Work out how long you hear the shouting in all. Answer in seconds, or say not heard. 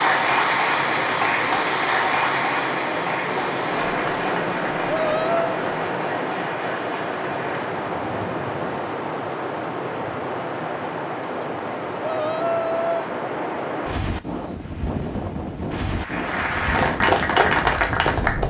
2 s.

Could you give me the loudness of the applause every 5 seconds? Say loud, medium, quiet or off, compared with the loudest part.
loud, quiet, off, loud.